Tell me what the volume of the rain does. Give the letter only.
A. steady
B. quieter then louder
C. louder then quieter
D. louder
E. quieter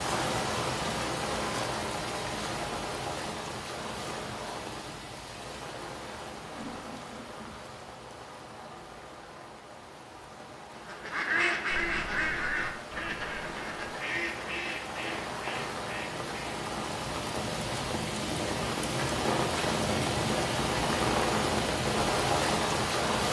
B.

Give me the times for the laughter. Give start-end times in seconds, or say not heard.
6.5-7.5.